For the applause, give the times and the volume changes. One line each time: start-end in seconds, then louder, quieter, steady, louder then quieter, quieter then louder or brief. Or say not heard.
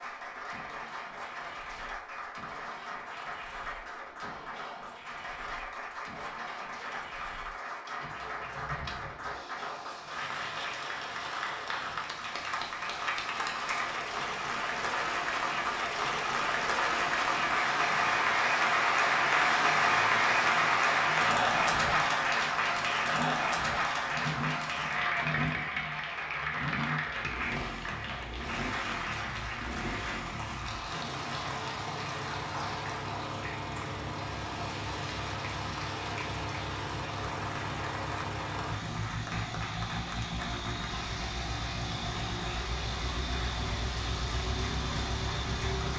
0.0-45.9 louder then quieter.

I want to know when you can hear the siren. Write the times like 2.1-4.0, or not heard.
not heard.